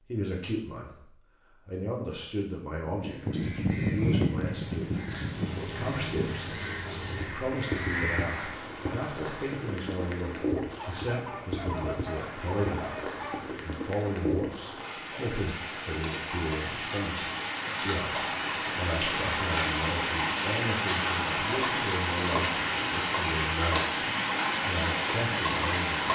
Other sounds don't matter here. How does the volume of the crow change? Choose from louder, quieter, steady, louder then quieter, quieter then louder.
quieter then louder.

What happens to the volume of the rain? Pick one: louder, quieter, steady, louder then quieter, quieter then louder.
louder.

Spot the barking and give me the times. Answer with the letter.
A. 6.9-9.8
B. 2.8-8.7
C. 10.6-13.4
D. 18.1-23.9
C.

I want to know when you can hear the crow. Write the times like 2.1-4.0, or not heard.
2.8-8.7.